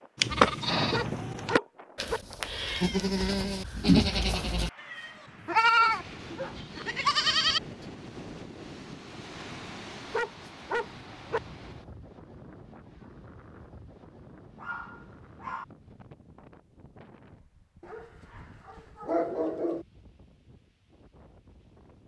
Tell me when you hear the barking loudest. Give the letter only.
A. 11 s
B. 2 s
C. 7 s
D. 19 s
D.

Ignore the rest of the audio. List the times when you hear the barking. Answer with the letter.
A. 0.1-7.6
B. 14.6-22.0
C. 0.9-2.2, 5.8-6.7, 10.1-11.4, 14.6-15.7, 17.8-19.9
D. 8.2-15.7
C.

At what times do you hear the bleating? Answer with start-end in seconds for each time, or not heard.
0.1-7.6.